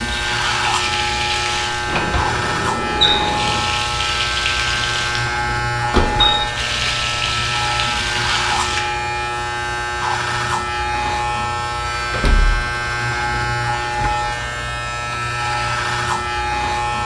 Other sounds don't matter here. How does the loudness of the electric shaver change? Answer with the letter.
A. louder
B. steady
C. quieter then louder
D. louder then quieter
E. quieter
B.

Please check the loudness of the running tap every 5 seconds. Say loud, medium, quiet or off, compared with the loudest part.
loud, loud, off, off.